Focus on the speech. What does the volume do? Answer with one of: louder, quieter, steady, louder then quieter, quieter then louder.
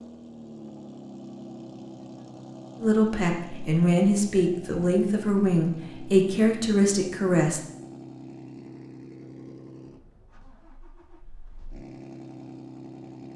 steady.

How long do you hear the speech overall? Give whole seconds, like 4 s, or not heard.
5 s.